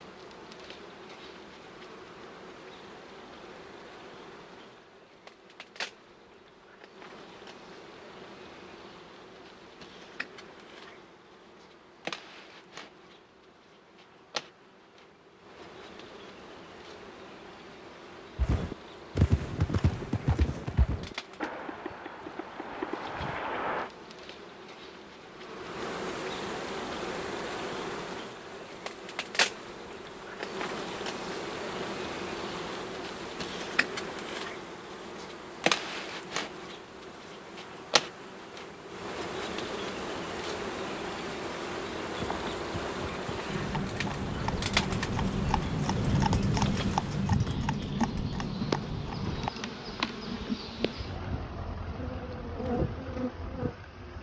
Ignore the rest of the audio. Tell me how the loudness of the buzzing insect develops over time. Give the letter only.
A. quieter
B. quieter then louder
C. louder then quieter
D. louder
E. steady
D.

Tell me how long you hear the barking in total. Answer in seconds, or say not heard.
not heard.